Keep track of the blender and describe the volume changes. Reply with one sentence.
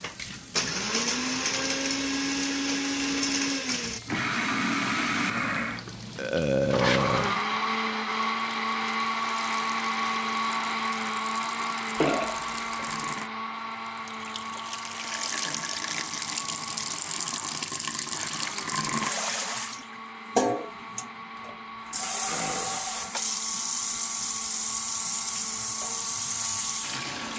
The volume of the blender goes down.